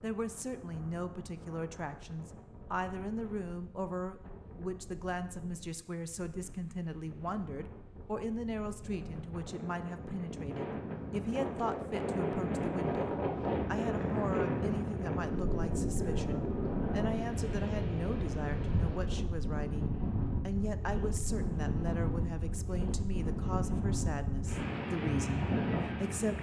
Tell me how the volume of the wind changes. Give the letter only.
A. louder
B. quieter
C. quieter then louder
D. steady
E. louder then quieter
A.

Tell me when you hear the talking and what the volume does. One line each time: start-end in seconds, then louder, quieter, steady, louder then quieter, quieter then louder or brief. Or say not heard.
0.0-26.3 steady.